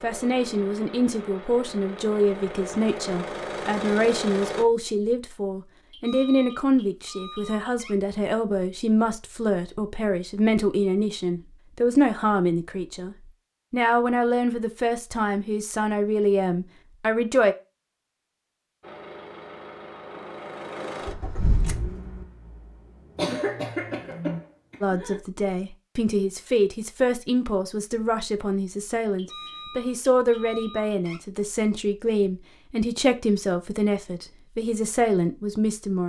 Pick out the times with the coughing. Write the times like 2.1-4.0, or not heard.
23.1-25.2.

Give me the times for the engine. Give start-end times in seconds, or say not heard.
0.0-4.7, 18.8-24.4.